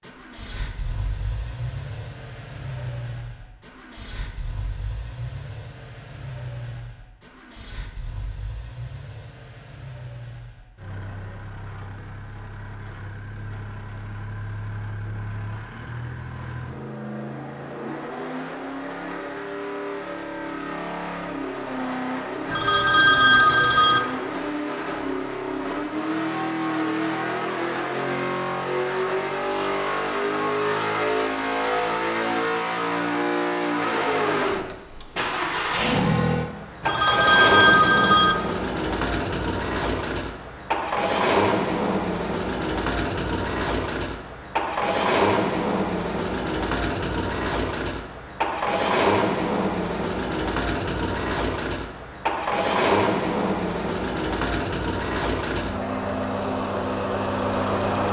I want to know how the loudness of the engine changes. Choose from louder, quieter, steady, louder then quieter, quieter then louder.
louder.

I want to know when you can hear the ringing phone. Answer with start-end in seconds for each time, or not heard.
22.5-24.0, 36.8-38.4.